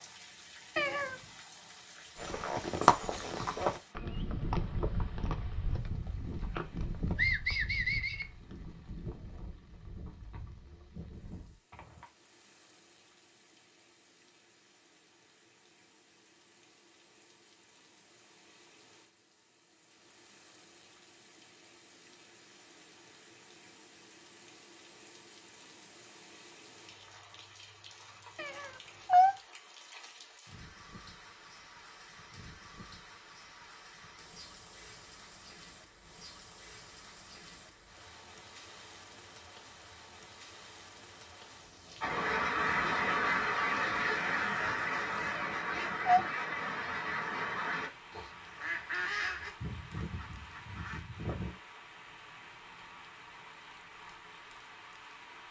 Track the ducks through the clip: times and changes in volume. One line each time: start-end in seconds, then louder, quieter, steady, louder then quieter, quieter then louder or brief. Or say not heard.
42.0-51.5 quieter.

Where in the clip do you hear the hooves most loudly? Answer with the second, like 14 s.
3 s.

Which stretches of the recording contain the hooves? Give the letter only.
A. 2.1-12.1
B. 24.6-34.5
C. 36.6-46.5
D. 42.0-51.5
A.